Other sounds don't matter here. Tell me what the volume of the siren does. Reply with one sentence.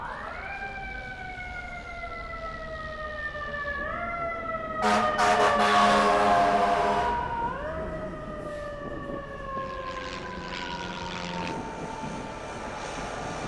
The loudness of the siren goes up, then down.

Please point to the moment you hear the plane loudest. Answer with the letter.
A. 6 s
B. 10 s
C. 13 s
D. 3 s
C.